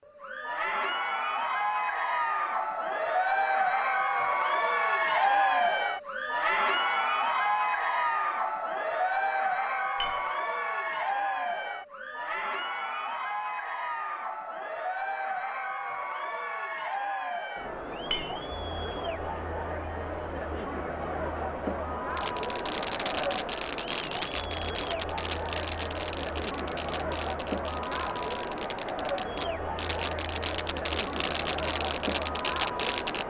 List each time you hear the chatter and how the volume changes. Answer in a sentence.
The chatter can be heard from 0.1 to 33.2 s, getting quieter.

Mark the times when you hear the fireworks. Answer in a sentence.
You can hear the fireworks from 22.1 to 33.2 s.